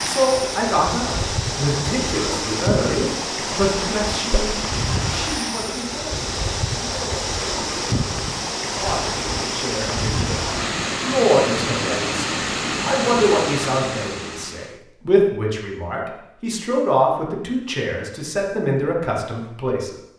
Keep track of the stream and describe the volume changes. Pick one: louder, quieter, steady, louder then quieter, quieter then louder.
steady.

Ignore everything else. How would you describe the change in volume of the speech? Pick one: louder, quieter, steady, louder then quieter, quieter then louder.
quieter then louder.